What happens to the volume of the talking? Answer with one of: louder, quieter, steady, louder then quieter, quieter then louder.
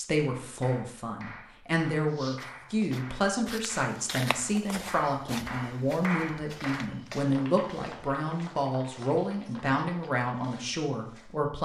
steady.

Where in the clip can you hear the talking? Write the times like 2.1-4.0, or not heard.
0.0-11.5.